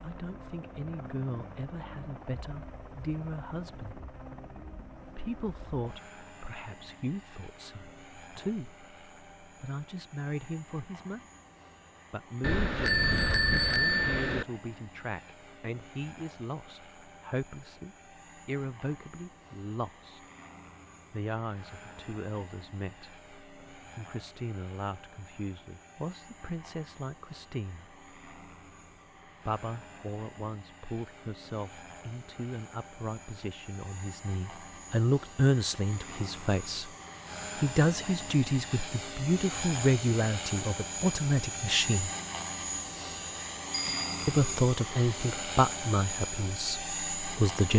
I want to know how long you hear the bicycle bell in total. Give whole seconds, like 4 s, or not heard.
3 s.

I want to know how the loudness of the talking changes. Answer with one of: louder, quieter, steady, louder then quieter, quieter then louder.
louder.